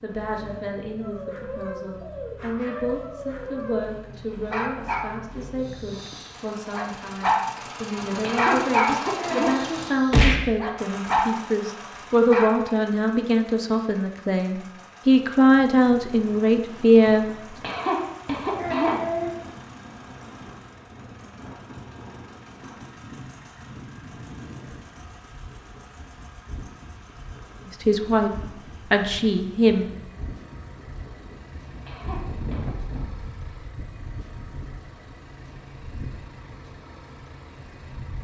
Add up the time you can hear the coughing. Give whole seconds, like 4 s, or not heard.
4 s.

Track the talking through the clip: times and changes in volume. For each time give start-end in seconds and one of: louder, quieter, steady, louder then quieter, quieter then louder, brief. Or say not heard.
0.0-17.6 louder
27.6-28.3 brief
28.9-29.9 brief.